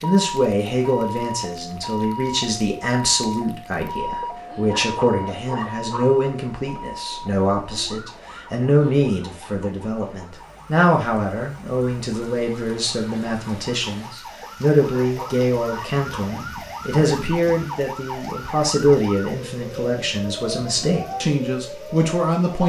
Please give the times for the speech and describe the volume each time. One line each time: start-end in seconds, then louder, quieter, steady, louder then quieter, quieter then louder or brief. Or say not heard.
0.0-22.6 steady.